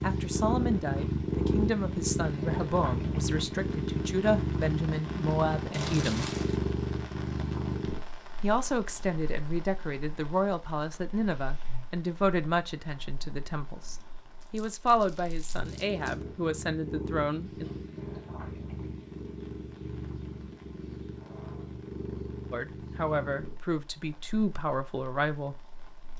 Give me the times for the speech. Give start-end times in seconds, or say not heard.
0.0-6.3, 8.4-17.6, 22.5-25.6.